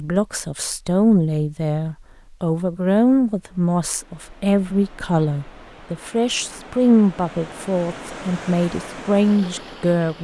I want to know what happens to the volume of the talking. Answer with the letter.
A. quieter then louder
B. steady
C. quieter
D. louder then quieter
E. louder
B.